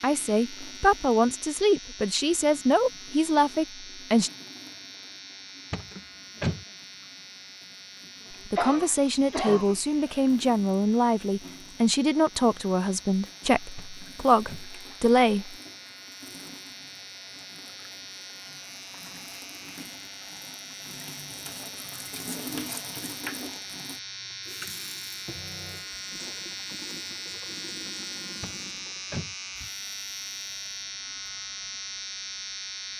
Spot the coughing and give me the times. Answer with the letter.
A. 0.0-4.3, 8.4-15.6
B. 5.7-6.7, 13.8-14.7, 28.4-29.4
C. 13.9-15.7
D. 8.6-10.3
D.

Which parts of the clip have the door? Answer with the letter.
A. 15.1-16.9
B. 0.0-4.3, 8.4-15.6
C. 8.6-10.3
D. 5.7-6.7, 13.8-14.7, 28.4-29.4
D.